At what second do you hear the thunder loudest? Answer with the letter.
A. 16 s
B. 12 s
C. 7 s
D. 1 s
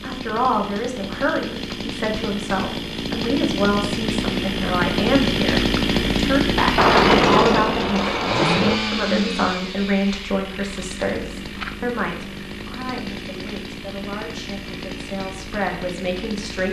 C.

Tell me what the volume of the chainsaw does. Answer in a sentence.
The volume of the chainsaw goes up, then down.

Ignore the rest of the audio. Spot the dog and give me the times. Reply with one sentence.
The dog can't be heard in this clip.